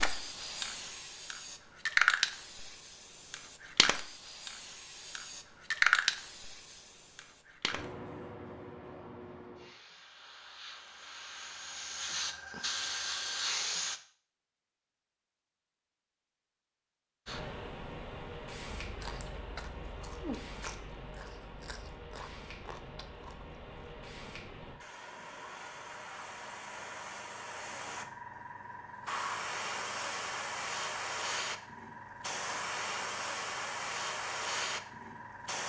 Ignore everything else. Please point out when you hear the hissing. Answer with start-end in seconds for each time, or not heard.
0.0-14.0, 17.2-35.6.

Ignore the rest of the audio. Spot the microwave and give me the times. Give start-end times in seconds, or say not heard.
not heard.